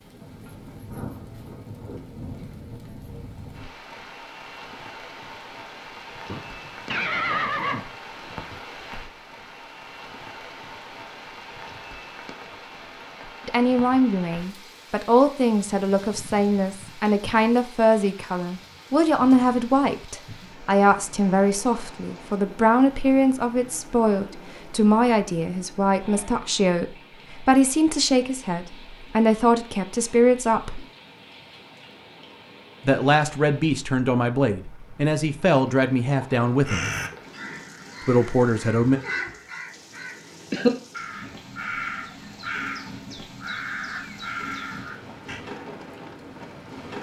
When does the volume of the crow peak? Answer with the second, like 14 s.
41 s.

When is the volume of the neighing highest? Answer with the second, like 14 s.
7 s.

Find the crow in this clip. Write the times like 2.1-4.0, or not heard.
36.6-45.4.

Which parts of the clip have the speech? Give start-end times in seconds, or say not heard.
13.4-30.9, 32.9-36.9, 38.0-39.0.